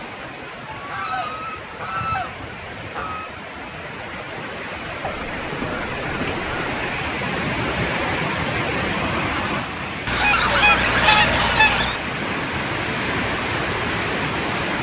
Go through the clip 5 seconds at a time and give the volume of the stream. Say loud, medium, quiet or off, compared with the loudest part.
medium, loud, loud.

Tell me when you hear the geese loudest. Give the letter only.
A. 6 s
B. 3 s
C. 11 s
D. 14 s
C.